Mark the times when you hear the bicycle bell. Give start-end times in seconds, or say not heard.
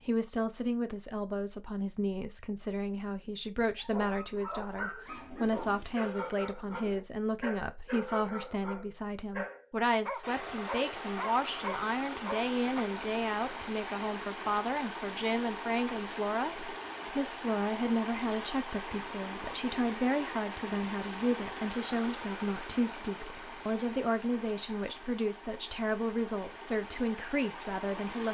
not heard.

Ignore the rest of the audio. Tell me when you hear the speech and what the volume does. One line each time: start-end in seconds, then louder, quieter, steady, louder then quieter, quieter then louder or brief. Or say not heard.
0.1-28.2 steady.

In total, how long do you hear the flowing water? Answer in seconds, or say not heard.
18 s.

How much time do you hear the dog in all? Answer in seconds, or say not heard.
9 s.